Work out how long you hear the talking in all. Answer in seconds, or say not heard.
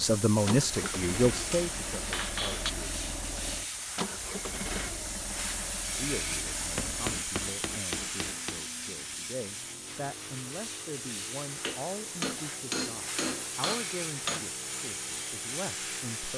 13 s.